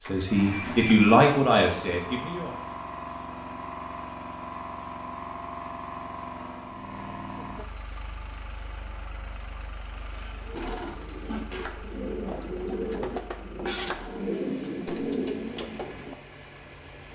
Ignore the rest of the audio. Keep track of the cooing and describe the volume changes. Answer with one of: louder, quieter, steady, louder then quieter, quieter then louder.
louder.